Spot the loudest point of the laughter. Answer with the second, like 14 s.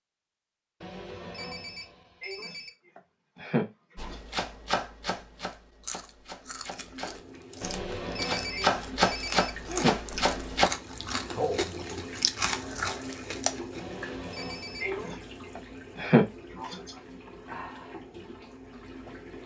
16 s.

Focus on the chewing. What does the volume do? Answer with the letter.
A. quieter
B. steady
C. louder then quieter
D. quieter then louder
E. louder
E.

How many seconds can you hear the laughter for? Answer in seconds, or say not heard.
5 s.